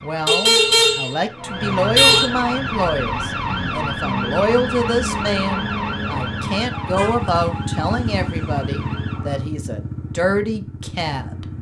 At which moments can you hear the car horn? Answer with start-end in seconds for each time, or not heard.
0.2-2.3, 6.8-7.8.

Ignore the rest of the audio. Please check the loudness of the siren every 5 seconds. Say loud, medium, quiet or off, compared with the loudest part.
loud, loud, off.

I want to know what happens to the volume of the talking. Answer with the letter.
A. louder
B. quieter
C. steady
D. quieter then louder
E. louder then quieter
C.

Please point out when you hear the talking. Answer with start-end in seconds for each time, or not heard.
0.0-11.4.